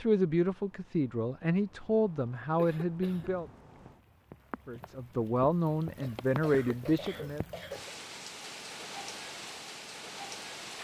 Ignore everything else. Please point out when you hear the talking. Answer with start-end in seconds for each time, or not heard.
0.0-3.5, 4.7-7.5.